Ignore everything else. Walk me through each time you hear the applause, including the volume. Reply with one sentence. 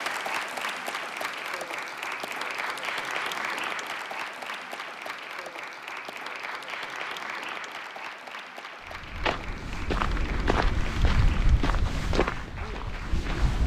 The applause can be heard from 0.0 to 13.6 s, getting quieter.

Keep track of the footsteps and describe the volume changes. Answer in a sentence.
The volume of the footsteps goes down.